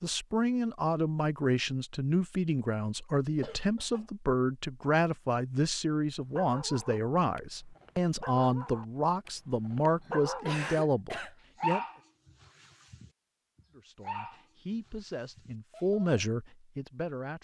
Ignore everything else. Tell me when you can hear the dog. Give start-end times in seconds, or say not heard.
6.2-16.2.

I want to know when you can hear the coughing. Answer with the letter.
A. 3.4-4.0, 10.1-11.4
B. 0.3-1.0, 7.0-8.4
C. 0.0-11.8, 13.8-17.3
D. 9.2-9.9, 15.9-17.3
A.